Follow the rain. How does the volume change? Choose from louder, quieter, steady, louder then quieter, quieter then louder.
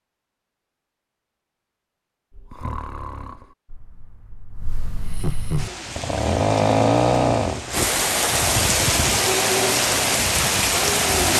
louder.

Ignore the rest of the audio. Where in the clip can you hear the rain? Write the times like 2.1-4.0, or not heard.
5.5-11.3.